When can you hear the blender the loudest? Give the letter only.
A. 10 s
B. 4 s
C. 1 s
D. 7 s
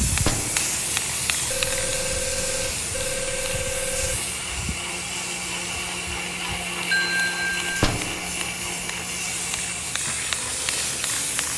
D.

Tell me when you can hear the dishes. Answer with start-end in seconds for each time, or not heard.
not heard.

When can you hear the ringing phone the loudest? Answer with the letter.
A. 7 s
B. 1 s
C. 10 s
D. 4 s
A.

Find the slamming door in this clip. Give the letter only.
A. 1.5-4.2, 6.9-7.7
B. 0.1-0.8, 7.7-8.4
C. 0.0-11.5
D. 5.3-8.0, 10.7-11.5
B.